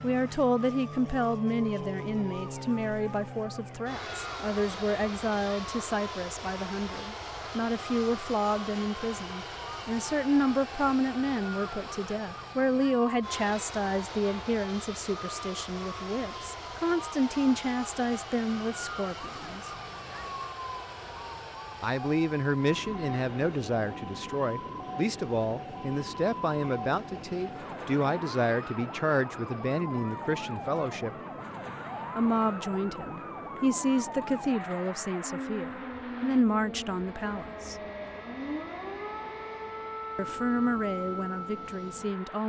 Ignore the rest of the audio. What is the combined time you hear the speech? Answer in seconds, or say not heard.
37 s.